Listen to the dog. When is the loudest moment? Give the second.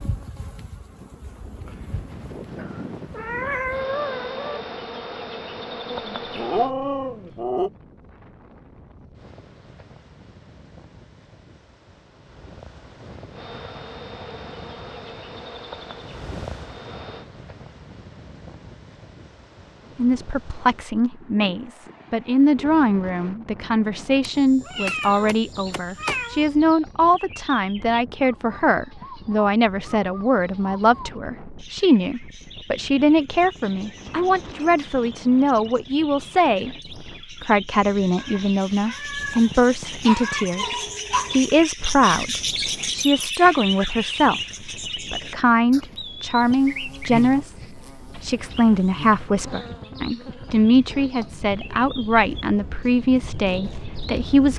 7 s.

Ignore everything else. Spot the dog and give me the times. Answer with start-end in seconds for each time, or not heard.
5.9-7.7, 39.5-41.4.